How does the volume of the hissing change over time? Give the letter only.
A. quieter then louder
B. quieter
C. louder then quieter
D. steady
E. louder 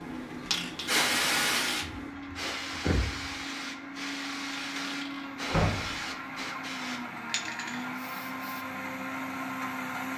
B.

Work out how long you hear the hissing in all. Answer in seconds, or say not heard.
9 s.